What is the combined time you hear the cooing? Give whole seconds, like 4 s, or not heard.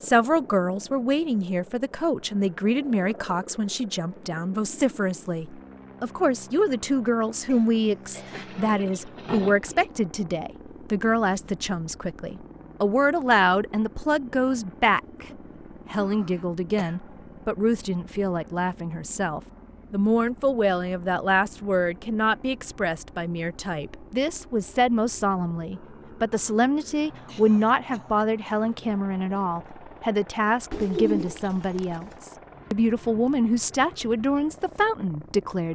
3 s.